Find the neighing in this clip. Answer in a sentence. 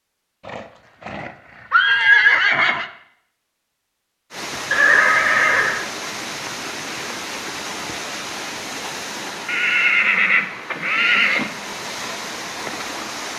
The neighing can be heard from 0.5 to 2.9 s, from 4.7 to 5.8 s and from 9.4 to 11.5 s.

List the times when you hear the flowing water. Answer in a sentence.
The flowing water can be heard from 4.3 to 13.3 s.